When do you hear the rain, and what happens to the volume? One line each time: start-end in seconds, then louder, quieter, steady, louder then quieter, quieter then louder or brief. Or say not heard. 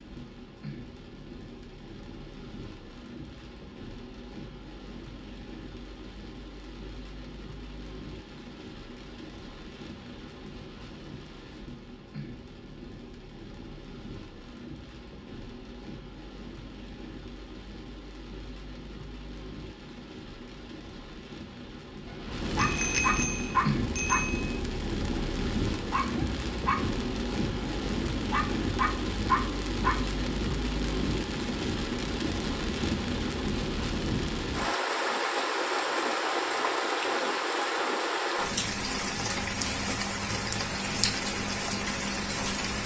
0.0-42.8 louder.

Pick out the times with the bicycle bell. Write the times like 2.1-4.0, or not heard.
22.6-24.4.